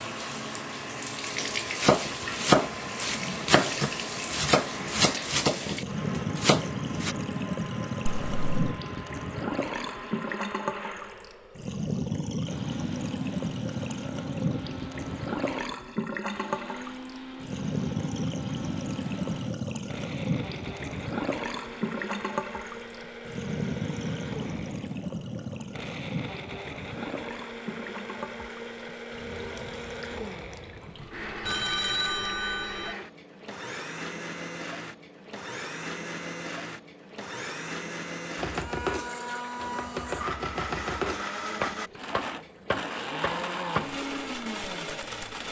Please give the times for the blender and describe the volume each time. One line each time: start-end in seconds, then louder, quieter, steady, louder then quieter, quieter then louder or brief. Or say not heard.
0.0-45.4 louder.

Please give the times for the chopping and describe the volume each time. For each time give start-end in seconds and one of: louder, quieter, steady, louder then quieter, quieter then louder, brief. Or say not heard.
1.4-7.2 quieter
38.4-43.9 steady.